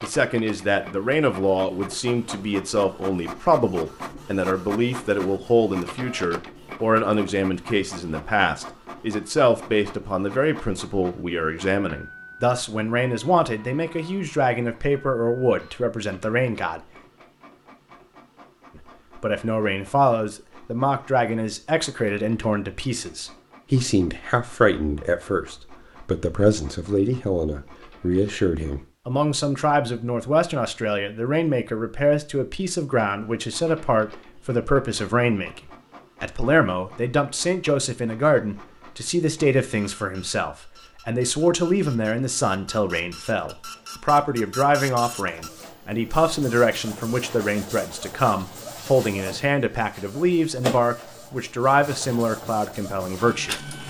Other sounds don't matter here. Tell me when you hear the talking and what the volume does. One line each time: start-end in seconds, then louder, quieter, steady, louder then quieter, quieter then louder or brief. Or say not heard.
0.0-16.8 steady
18.8-53.8 steady.